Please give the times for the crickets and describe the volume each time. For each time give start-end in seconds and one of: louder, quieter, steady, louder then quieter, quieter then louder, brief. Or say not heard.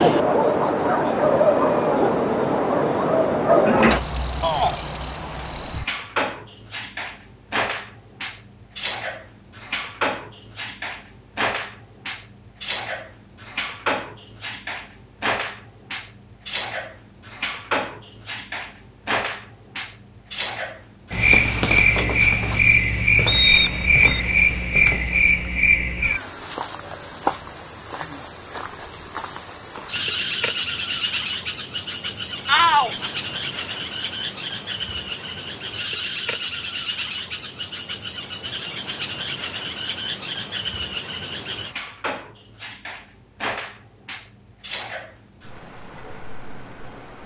0.0-47.2 quieter.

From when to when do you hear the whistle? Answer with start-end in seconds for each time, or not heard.
23.2-24.2.